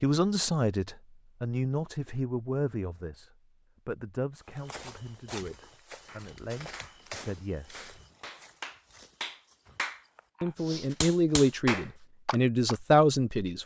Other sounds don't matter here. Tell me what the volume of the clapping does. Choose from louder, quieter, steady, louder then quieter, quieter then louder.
louder.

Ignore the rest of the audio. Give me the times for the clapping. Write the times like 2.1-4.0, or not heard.
6.0-12.8.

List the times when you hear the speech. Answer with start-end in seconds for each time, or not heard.
0.0-7.8, 10.4-13.6.